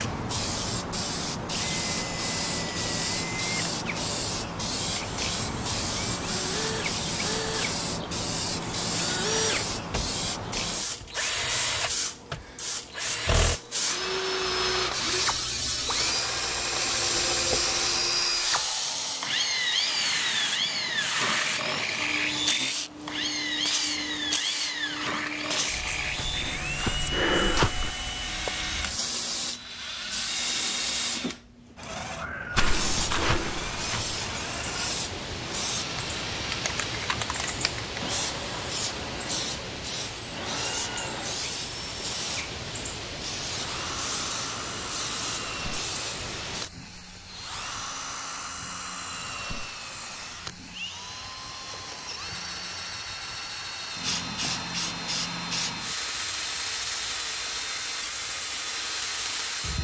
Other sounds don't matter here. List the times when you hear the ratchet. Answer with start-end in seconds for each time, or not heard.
not heard.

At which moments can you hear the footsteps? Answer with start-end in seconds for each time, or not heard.
26.1-27.9, 32.5-34.1.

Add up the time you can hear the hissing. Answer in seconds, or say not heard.
60 s.